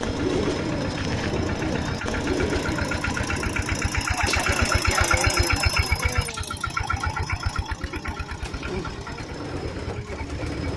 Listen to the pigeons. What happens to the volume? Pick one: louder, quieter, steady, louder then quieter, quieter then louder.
quieter then louder.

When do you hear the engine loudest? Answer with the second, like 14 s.
5 s.